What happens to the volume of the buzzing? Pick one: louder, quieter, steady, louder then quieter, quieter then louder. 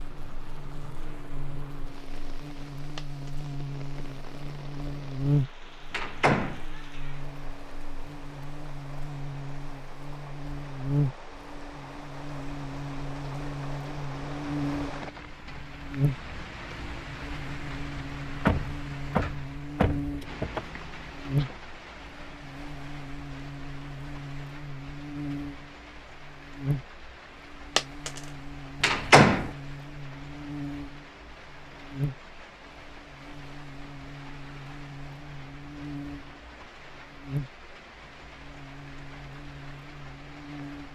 quieter.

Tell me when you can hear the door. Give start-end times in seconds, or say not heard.
5.9-6.6, 18.4-20.6, 28.8-29.5.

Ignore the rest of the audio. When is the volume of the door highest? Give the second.
29 s.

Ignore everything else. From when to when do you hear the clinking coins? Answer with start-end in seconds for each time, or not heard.
3.0-3.5, 27.8-28.2.